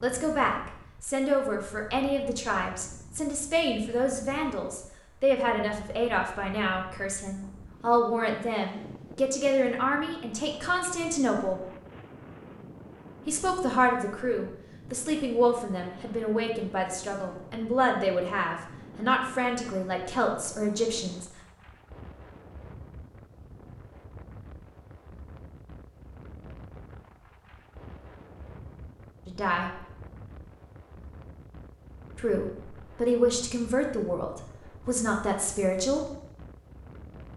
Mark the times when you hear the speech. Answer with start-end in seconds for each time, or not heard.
0.0-11.6, 13.2-21.2, 29.2-29.8, 32.1-36.0.